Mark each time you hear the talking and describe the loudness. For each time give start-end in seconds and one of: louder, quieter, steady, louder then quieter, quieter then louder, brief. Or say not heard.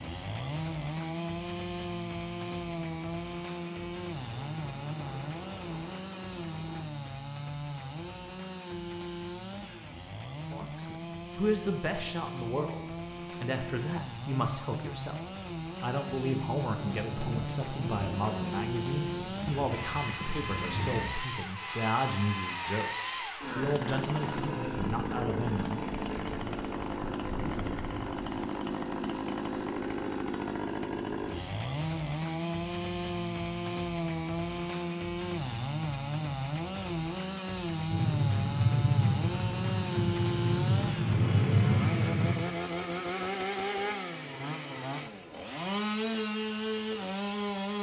10.4-25.8 steady.